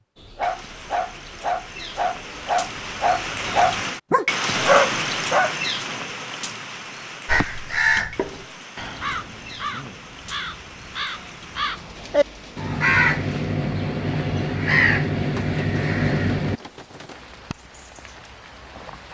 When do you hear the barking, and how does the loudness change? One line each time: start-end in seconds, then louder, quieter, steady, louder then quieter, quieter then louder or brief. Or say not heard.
0.1-5.5 louder.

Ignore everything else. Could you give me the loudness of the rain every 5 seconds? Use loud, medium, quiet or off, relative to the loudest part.
loud, loud, quiet, quiet.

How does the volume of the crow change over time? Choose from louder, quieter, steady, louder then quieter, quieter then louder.
quieter then louder.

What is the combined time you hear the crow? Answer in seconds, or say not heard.
9 s.